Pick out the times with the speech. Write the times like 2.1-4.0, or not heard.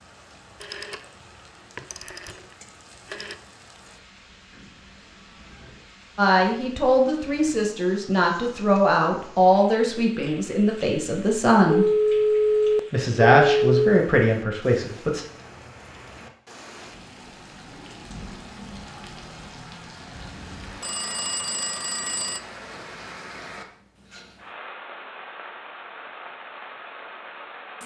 6.2-11.8, 12.9-15.2.